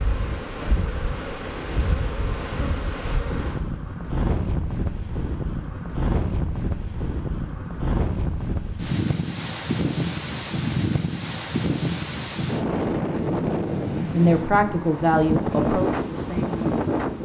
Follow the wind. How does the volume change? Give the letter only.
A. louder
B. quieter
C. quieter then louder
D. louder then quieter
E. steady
A.